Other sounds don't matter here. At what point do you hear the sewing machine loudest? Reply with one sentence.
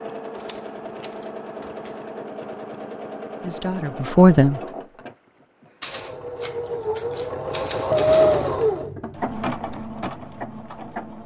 The loudest moment of the sewing machine is at 8 seconds.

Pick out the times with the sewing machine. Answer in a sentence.
You can hear the sewing machine from 0.0 to 11.2 s.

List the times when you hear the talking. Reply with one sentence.
The talking can be heard from 3.4 to 4.7 s.